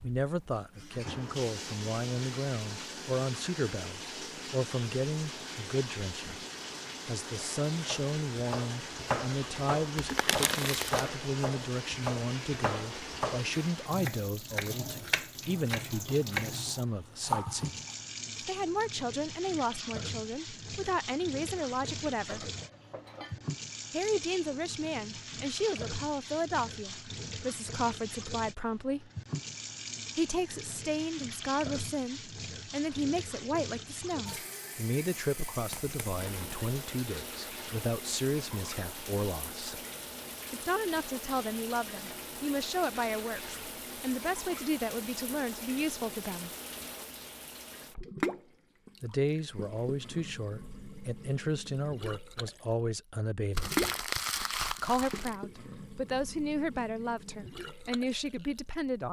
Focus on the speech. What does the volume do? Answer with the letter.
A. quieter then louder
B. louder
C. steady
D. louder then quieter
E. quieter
C.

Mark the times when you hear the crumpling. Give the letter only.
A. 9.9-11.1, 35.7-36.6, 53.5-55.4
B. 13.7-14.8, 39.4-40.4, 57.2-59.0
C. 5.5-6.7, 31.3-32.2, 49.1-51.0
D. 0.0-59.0
A.